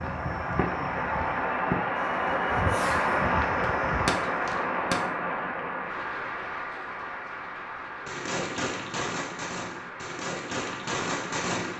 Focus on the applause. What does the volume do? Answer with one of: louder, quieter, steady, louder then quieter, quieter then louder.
quieter.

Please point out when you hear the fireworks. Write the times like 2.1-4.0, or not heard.
0.0-5.0, 8.1-11.7.